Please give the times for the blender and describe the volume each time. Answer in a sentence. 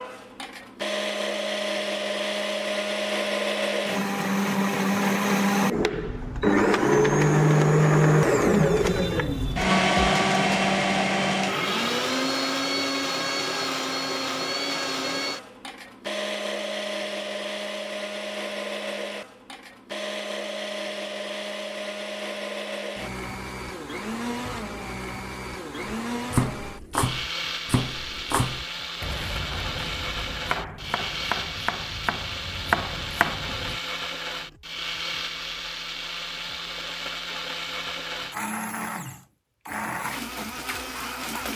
The blender can be heard from 0.0 to 41.5 s, getting quieter.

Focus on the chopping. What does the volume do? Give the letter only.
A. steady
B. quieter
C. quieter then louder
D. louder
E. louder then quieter
C.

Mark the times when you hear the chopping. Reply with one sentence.
The chopping can be heard from 25.9 to 33.8 s.